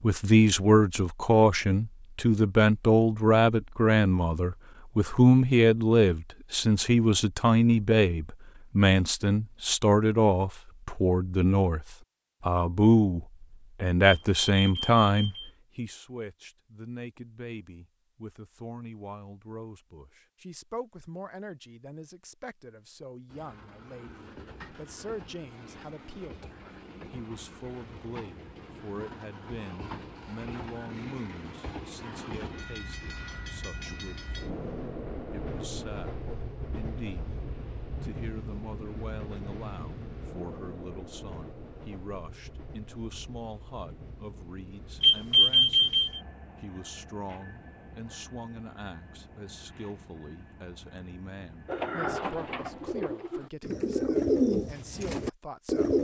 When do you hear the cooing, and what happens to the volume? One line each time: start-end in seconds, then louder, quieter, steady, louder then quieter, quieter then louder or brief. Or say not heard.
51.6-55.9 louder then quieter.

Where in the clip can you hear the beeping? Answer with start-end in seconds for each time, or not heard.
14.1-15.5, 45.0-46.2.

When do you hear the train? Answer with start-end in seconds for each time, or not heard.
23.2-53.1.